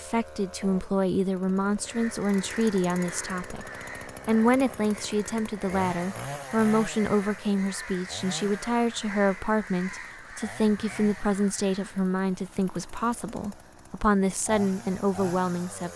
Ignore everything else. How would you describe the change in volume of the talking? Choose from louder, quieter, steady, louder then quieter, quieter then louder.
steady.